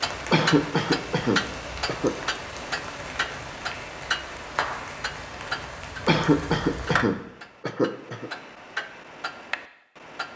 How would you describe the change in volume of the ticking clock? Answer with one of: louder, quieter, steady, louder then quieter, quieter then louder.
quieter.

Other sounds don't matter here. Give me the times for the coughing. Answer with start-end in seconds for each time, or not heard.
0.3-2.1, 6.0-8.3.